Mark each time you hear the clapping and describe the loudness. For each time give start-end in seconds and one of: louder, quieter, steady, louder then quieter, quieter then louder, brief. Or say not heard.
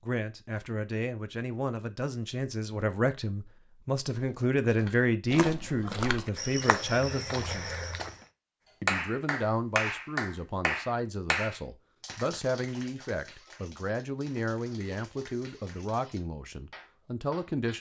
8.8-17.7 quieter.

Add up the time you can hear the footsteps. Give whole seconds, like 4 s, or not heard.
4 s.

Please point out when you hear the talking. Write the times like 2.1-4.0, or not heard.
0.0-7.7, 8.8-17.7.